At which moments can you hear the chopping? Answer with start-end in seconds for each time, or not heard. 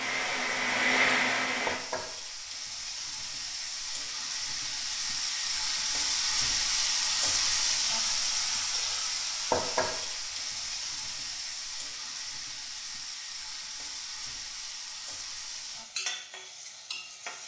not heard.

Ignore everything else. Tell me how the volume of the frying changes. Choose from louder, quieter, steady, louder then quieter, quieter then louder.
louder then quieter.